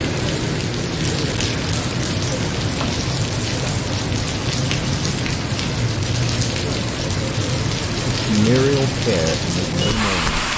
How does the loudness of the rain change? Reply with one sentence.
The volume of the rain stays about the same.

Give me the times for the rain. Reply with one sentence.
The rain can be heard from 0.0 to 10.5 s.